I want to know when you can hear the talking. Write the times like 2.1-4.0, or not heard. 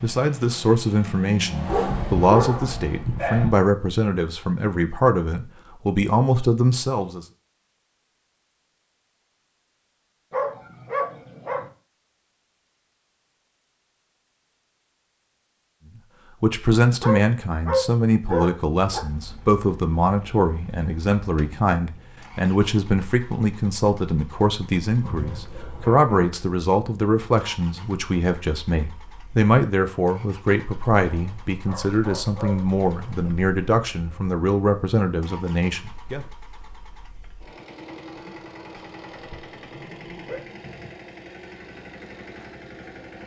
0.0-7.2, 16.4-36.2.